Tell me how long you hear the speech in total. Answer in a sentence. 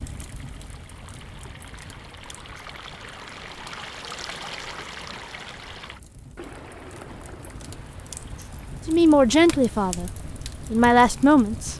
The speech can be heard for 3 seconds in total.